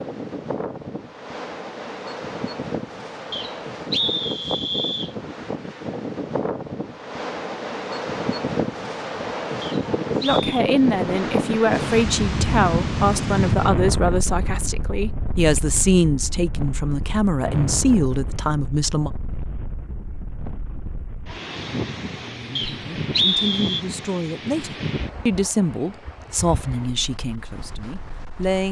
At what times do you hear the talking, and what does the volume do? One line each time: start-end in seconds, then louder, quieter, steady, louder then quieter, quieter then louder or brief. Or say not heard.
10.2-19.1 steady
22.1-28.6 louder then quieter.